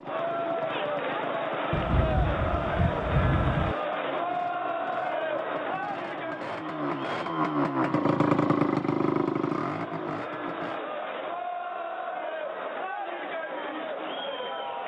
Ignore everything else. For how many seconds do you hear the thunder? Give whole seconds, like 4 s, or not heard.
2 s.